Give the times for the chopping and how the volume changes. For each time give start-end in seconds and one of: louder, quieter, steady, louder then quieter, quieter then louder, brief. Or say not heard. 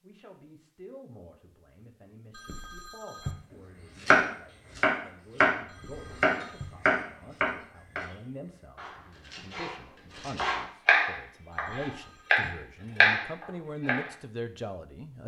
4.0-14.1 quieter then louder.